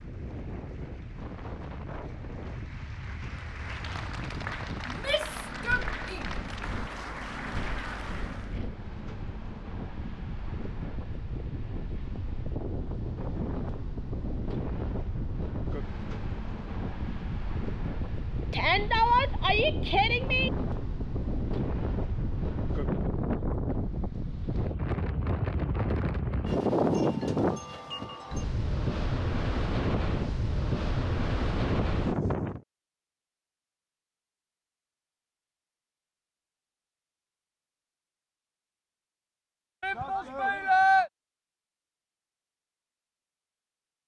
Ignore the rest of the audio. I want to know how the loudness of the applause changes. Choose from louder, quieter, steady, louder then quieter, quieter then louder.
louder.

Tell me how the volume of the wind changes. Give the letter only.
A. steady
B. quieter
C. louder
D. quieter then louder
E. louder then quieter
C.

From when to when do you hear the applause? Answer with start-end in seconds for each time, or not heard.
0.0-8.6.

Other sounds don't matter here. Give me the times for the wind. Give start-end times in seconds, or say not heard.
0.0-32.6.